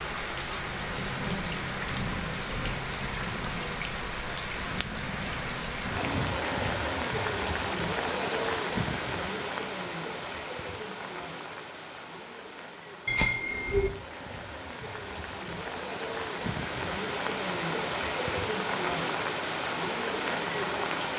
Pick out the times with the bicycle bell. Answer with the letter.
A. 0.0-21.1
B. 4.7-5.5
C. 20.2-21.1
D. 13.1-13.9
D.